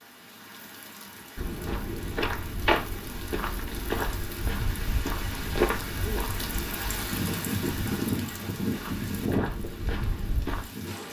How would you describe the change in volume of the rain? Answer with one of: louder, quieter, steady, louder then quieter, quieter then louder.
louder.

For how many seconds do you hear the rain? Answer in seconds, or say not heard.
11 s.